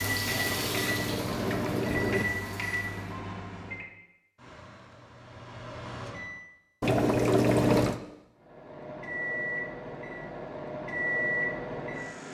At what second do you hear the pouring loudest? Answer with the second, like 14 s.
8 s.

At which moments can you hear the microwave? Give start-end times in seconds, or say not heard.
0.0-6.5, 8.3-12.3.